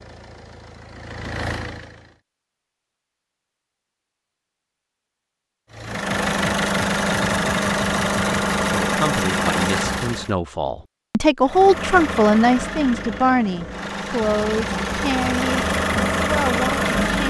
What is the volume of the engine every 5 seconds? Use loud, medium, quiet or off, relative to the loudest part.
quiet, loud, medium, loud.